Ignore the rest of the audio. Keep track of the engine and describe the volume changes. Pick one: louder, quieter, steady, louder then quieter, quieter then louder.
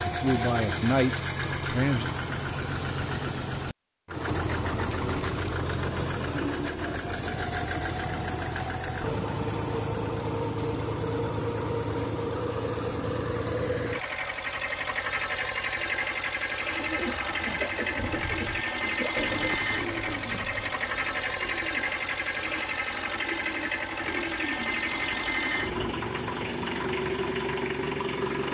steady.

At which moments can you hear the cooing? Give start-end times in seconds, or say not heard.
16.6-26.1.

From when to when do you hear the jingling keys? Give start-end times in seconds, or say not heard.
4.9-5.5, 19.1-20.7.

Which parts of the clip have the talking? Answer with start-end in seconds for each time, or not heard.
0.0-2.0.